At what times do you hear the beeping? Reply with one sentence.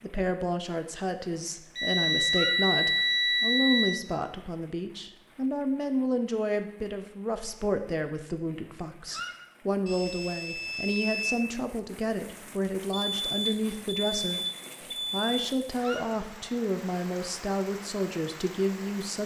The beeping can be heard from 1.8 to 3.9 s, from 9.8 to 11.3 s and from 12.9 to 15.2 s.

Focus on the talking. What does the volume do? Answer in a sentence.
The volume of the talking stays about the same.